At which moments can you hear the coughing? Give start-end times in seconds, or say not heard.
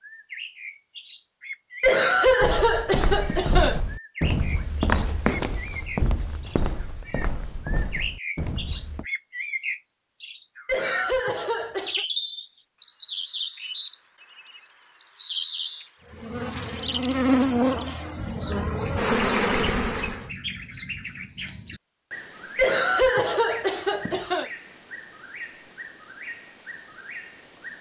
1.8-3.8, 10.7-12.1, 22.6-24.5.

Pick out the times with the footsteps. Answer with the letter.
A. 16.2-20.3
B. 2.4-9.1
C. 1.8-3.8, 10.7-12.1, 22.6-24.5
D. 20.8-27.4
B.